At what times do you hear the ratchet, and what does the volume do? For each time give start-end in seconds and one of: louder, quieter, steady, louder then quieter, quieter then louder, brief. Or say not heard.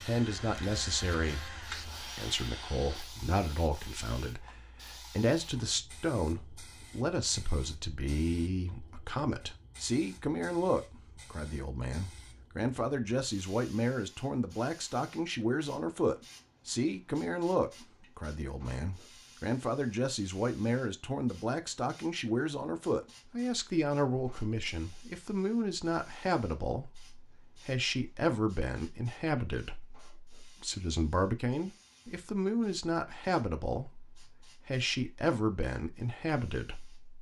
not heard.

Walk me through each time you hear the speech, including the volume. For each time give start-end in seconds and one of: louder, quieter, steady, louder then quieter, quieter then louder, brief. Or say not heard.
0.1-37.0 steady.